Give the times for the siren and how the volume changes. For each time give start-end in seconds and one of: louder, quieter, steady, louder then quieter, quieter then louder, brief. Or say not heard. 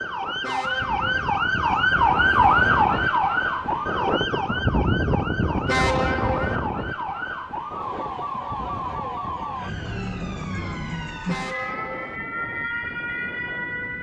0.0-13.9 quieter.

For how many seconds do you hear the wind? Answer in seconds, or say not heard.
14 s.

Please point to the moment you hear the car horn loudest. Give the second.
6 s.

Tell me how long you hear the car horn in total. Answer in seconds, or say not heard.
3 s.